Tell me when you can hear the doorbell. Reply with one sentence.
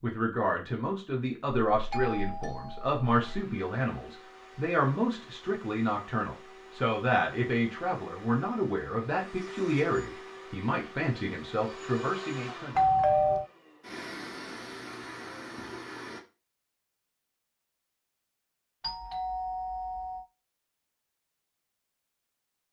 You can hear the doorbell from 1.7 to 3.5 s, from 12.8 to 13.4 s and from 18.8 to 20.2 s.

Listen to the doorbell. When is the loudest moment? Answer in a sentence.
The loudest moment of the doorbell is at 13 seconds.